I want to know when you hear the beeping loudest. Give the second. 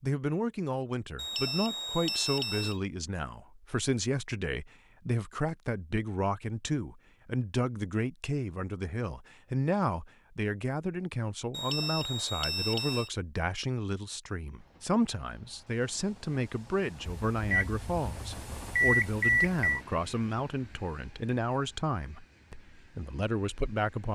19 s.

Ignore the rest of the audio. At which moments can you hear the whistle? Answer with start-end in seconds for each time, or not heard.
not heard.